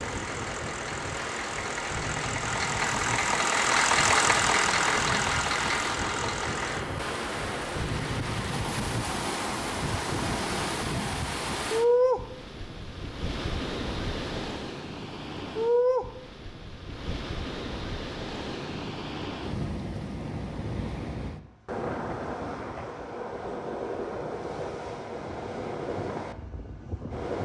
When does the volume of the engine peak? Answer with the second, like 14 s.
4 s.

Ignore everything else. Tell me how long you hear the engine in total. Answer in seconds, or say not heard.
7 s.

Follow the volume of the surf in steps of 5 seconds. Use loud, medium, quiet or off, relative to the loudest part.
medium, loud, loud, loud, medium, medium.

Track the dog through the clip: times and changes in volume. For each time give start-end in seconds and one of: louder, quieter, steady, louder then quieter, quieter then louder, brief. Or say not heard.
not heard.